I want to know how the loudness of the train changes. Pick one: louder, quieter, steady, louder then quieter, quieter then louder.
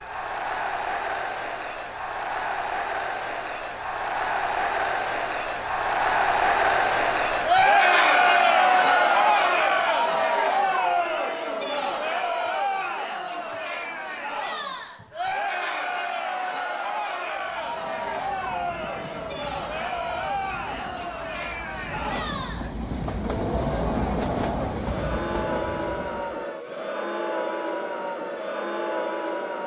louder.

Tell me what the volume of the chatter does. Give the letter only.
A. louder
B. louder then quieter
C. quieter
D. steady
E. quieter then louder
B.